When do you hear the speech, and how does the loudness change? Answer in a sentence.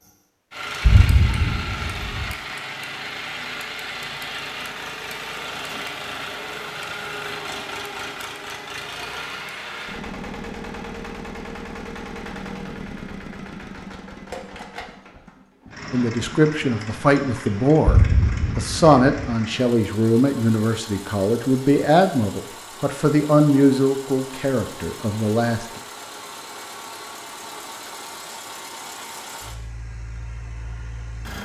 You can hear the speech from 15.9 to 25.6 s, at a steady volume.